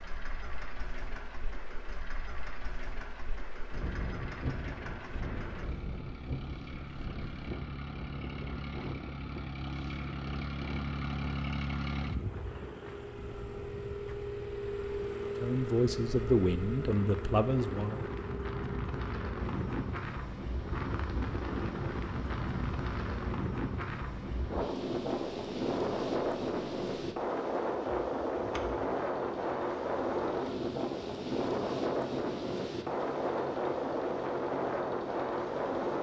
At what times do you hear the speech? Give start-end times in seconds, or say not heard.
15.4-18.1.